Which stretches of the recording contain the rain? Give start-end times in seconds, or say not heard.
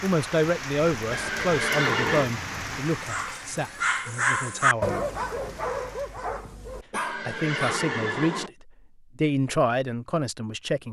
0.0-6.2.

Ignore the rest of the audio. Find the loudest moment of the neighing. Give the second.
2 s.